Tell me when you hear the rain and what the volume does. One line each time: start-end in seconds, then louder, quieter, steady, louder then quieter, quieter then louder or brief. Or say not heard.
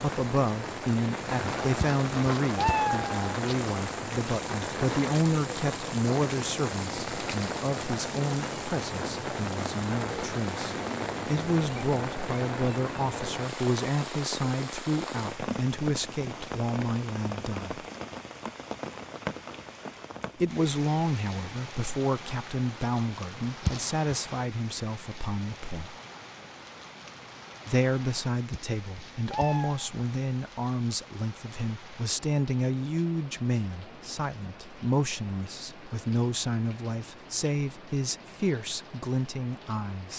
0.0-40.1 quieter.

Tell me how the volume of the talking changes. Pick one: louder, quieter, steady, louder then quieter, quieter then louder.
steady.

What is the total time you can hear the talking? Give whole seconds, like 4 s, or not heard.
36 s.